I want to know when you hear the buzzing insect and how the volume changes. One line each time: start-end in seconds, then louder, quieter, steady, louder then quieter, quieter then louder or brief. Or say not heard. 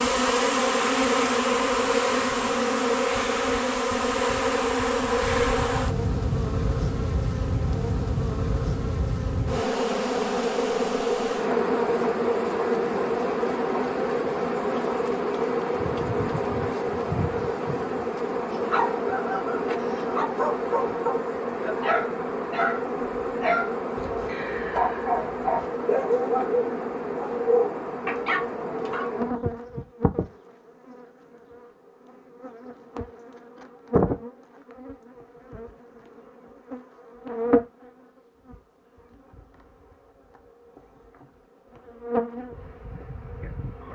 0.0-43.8 quieter.